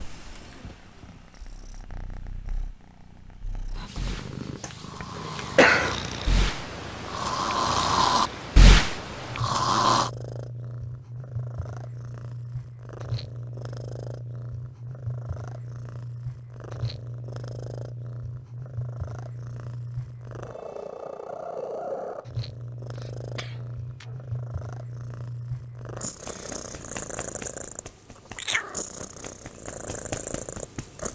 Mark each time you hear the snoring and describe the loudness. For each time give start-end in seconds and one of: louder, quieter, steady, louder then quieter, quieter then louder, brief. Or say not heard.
4.0-10.1 louder.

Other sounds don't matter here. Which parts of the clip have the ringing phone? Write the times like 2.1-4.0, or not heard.
not heard.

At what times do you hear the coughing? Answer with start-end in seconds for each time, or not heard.
5.2-6.0, 22.9-24.1.